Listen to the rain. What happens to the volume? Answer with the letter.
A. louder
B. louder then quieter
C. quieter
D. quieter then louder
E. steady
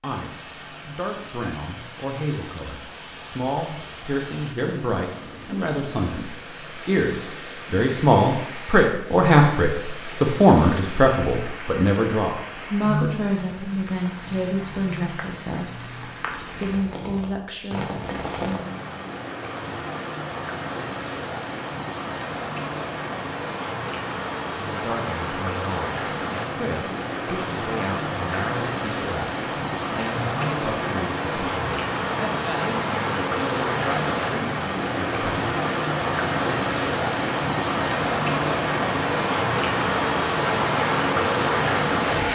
A.